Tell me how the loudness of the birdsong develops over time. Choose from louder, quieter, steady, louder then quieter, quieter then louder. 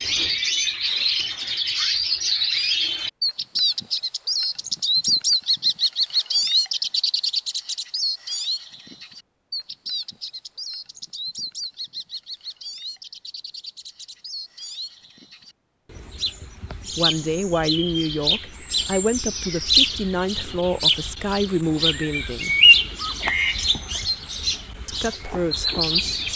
quieter then louder.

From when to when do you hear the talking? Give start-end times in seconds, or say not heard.
16.9-22.6, 24.9-26.1.